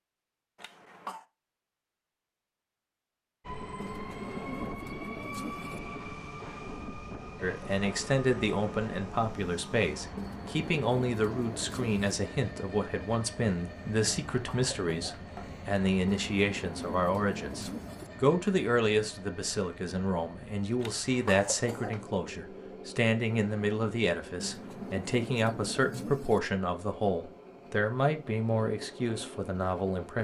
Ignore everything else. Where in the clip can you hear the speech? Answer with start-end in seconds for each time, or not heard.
7.4-30.1.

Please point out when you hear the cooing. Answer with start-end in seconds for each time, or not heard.
3.8-5.8, 10.2-12.2, 16.1-18.1, 24.4-26.4.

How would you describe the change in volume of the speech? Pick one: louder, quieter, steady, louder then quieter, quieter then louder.
steady.